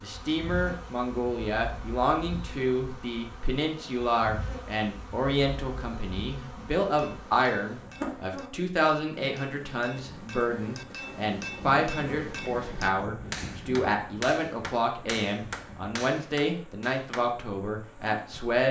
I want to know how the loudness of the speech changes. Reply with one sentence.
The volume of the speech stays about the same.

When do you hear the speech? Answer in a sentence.
The speech can be heard from 0.0 to 18.6 s.